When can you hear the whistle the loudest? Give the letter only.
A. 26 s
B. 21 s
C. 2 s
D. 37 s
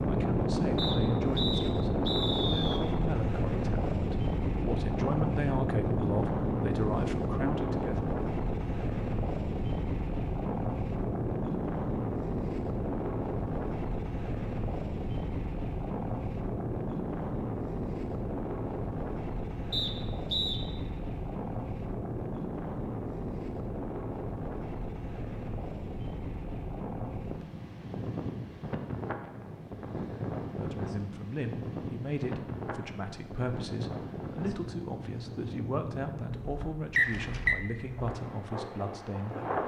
D.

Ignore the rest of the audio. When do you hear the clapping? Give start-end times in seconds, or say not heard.
not heard.